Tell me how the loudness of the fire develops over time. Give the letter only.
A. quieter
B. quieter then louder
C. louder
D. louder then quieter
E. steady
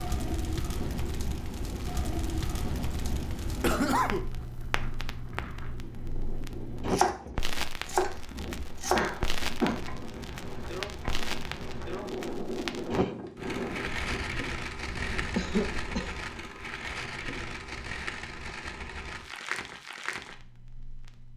E.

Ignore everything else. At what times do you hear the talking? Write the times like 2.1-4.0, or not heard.
not heard.